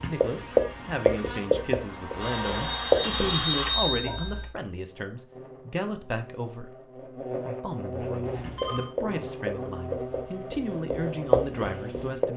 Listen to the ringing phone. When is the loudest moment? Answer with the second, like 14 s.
3 s.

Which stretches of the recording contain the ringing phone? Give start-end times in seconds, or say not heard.
2.2-4.5, 8.2-8.9.